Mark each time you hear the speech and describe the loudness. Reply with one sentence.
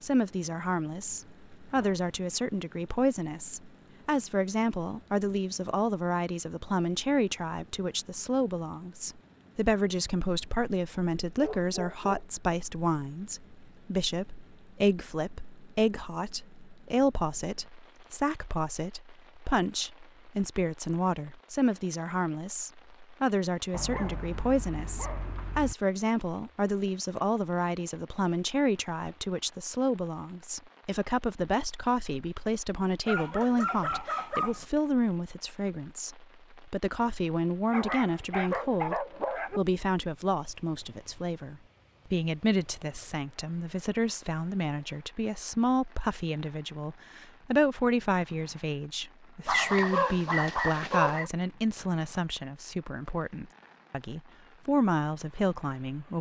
You can hear the speech from 0.0 to 56.1 s, at a steady volume.